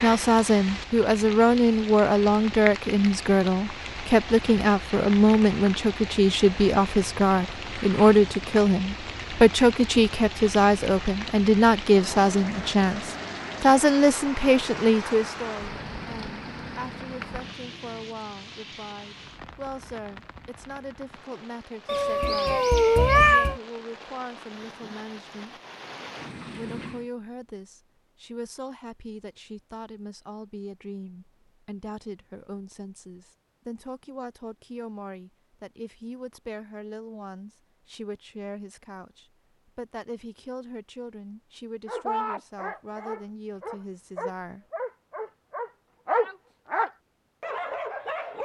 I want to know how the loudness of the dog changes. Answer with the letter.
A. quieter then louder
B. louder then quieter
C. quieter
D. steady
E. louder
B.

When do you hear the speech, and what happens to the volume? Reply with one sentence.
You can hear the speech from 0.0 to 25.6 s, getting quieter; and from 26.6 to 44.6 s, at a steady volume.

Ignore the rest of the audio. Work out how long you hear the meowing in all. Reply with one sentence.
The meowing can be heard for 2 seconds in total.